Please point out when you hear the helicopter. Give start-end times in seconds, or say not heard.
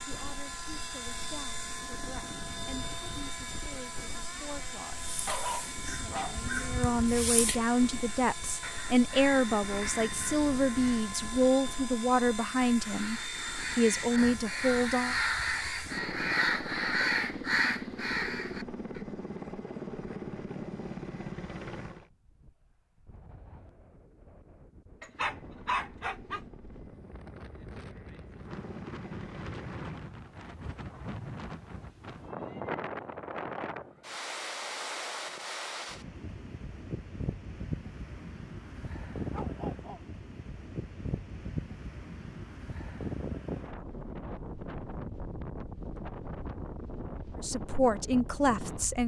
0.0-22.1, 24.9-30.1.